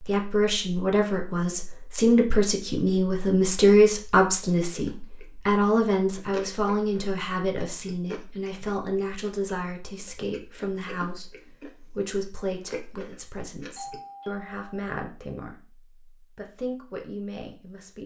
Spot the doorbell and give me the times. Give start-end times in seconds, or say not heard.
13.8-14.8.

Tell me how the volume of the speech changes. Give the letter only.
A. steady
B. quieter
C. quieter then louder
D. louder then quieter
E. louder
B.